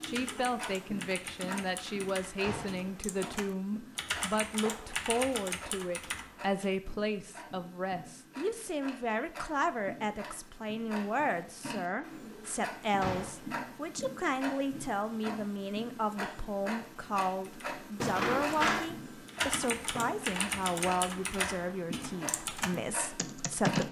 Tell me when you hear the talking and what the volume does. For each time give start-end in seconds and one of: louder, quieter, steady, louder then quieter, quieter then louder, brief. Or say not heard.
0.0-23.8 steady.